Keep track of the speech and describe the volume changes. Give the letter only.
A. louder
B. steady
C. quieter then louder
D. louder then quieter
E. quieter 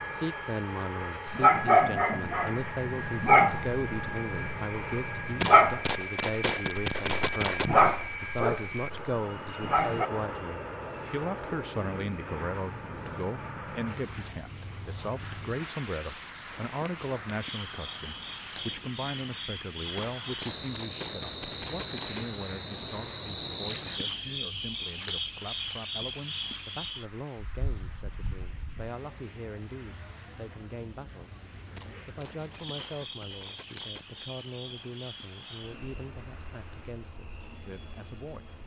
E.